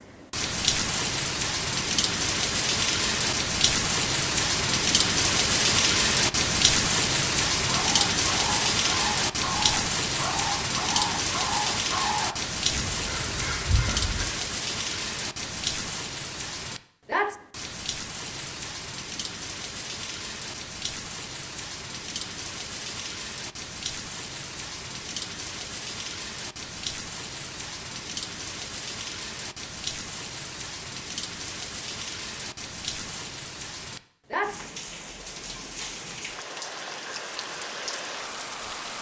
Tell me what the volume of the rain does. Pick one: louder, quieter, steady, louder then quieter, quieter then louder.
quieter.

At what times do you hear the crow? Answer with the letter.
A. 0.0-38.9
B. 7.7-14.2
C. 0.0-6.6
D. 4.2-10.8
B.